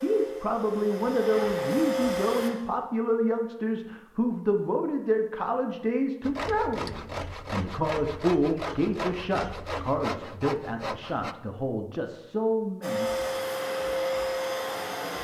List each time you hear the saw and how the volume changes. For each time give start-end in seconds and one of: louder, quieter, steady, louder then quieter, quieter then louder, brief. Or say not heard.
6.2-11.3 steady.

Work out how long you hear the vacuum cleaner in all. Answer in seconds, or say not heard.
5 s.